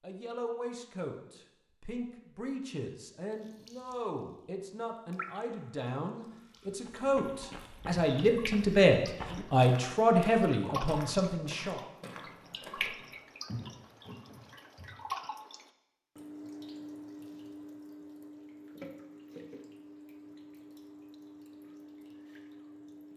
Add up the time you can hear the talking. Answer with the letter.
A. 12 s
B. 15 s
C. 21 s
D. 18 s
A.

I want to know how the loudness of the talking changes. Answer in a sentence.
The loudness of the talking goes up.